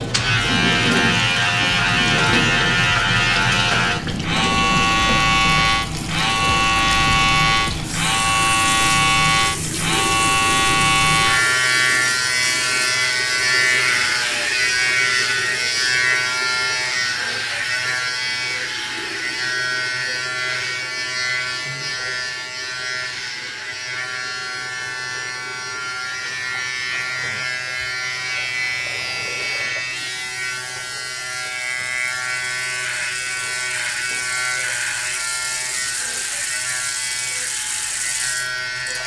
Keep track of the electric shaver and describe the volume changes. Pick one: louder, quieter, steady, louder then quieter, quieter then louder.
quieter.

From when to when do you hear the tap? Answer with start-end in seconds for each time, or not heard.
0.0-39.0.